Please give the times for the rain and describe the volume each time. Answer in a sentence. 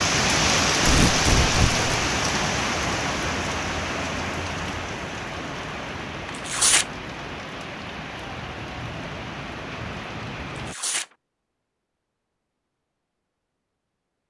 You can hear the rain from 0.0 to 10.8 s, getting quieter.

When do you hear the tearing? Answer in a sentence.
The tearing can be heard from 0.8 to 1.9 s, from 6.3 to 6.8 s and from 10.5 to 11.1 s.